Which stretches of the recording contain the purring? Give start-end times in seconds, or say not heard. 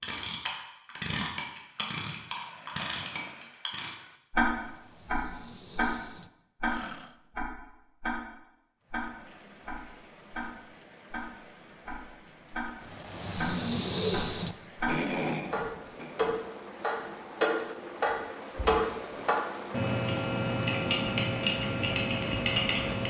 not heard.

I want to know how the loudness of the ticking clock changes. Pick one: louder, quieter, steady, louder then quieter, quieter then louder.
quieter then louder.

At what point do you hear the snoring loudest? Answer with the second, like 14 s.
14 s.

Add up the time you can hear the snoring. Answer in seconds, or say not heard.
9 s.